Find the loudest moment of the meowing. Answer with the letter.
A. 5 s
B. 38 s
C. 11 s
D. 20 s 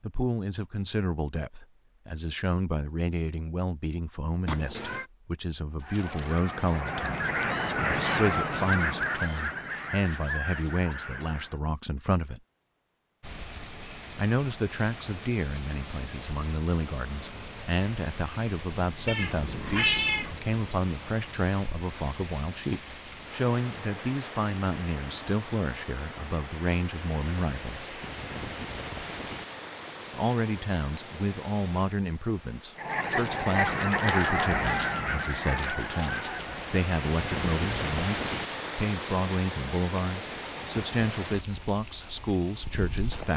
D.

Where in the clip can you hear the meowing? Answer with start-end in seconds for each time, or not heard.
4.5-5.0, 19.1-20.4, 34.6-35.2.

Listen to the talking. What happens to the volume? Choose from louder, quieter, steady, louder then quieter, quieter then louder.
steady.